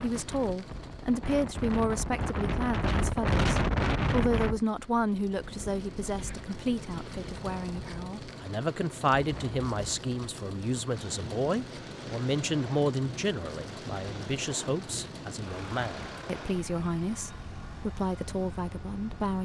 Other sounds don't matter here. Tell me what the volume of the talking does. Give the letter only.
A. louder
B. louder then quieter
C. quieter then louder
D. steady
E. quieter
D.